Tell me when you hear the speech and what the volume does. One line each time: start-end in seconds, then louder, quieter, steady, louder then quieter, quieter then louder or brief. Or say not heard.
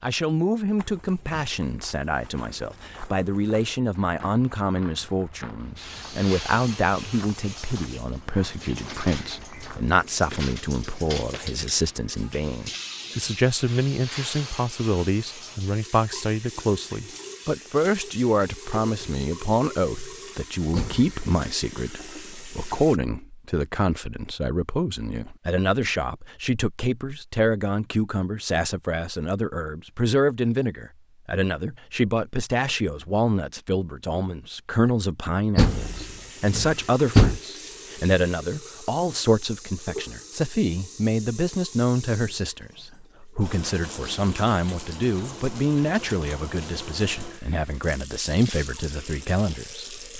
0.0-50.1 steady.